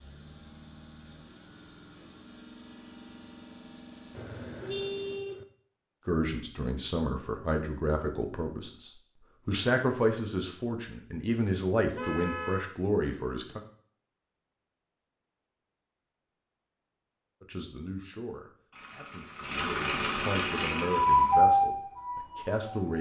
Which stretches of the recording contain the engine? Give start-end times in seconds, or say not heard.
0.0-5.2, 18.7-21.4.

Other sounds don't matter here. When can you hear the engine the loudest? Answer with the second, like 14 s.
20 s.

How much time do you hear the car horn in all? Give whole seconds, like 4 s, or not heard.
2 s.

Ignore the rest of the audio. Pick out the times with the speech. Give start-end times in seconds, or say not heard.
6.0-13.6, 17.4-22.9.